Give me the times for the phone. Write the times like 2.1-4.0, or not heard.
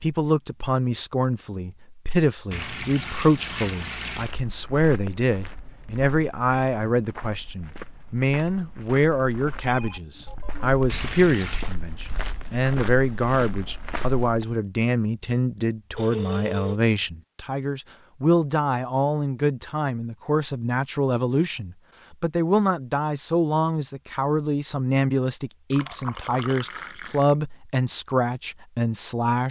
9.7-10.7, 15.9-16.8.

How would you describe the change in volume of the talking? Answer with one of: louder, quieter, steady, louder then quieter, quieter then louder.
steady.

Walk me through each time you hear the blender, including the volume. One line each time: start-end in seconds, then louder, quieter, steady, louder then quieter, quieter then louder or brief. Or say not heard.
not heard.